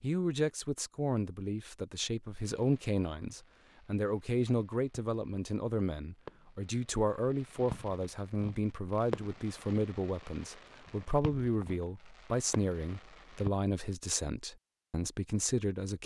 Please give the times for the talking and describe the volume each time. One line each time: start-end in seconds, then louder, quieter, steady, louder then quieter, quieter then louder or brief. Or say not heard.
0.0-16.0 steady.